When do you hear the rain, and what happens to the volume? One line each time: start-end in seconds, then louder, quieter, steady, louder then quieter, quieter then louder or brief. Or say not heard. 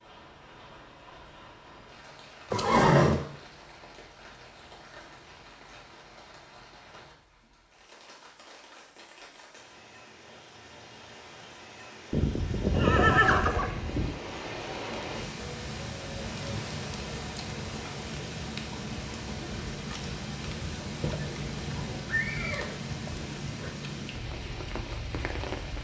0.0-25.7 louder.